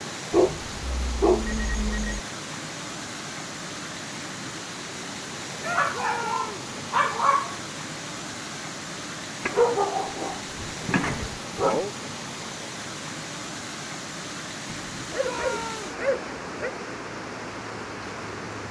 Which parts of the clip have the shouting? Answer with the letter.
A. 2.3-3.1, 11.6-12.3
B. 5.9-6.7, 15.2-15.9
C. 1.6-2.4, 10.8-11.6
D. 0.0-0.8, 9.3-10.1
B.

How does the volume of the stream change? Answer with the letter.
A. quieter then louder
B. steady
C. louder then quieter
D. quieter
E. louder
B.